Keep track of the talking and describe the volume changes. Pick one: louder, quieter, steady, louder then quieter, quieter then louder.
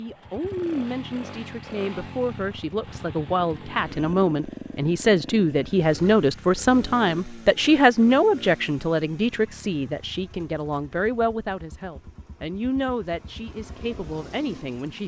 louder then quieter.